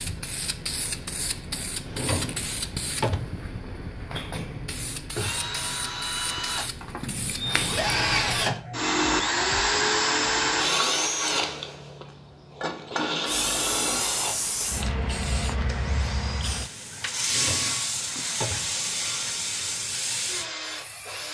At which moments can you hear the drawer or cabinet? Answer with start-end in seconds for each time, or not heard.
1.9-3.4, 17.2-18.8.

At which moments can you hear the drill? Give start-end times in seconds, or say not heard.
5.1-21.2.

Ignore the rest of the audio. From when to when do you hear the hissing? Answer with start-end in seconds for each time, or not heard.
0.0-8.5, 13.2-21.2.